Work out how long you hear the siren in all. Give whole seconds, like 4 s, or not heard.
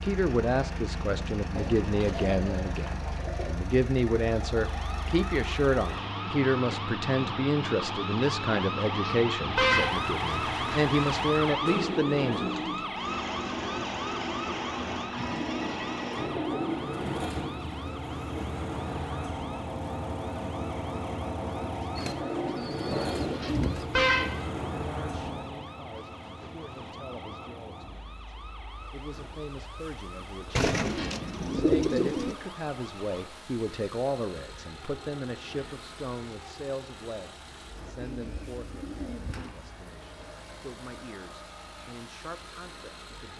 29 s.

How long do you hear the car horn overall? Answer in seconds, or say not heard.
3 s.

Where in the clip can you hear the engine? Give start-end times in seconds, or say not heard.
0.0-43.3.